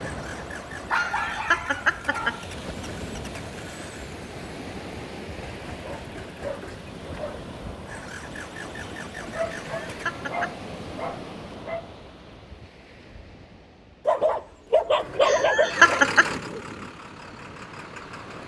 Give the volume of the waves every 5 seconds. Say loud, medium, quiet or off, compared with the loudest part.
loud, loud, loud, medium.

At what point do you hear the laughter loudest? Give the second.
16 s.